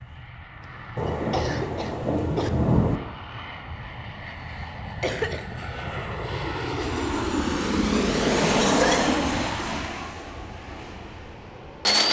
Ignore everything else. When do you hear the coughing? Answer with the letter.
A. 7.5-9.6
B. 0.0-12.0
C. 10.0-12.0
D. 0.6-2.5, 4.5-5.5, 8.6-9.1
D.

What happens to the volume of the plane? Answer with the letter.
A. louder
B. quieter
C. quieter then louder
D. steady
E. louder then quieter
E.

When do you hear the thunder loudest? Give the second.
3 s.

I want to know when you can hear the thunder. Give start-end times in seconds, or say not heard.
0.9-3.0.